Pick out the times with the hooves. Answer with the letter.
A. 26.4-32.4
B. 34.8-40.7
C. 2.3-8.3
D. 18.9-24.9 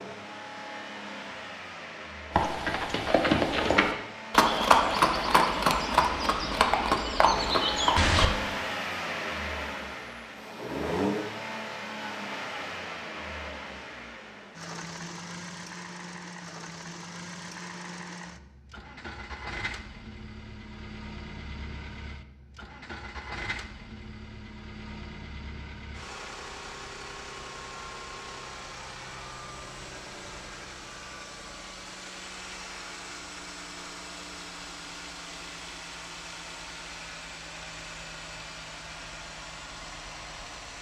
C.